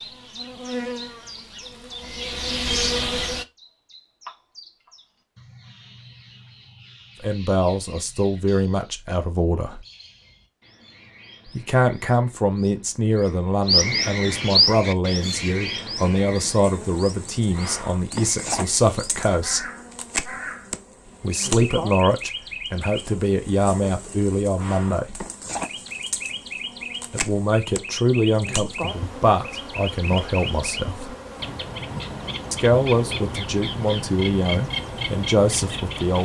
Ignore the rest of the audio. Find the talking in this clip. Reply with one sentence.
The talking can be heard from 7.2 to 9.8 s, from 11.6 to 19.6 s, from 21.2 to 25.2 s, from 27.1 to 31.1 s and from 32.5 to 36.2 s.